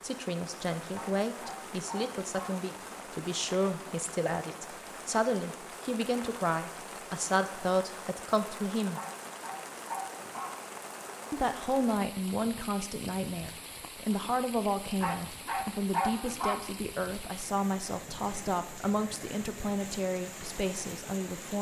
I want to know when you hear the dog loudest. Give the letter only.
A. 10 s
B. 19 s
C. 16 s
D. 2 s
C.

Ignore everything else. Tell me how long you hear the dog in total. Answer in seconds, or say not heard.
5 s.